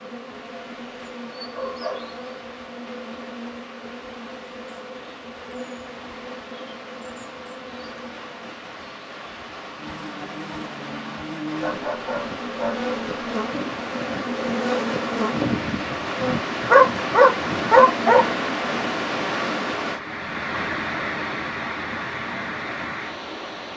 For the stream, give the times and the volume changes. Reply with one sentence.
You can hear the stream from 0.0 to 23.7 s, getting louder.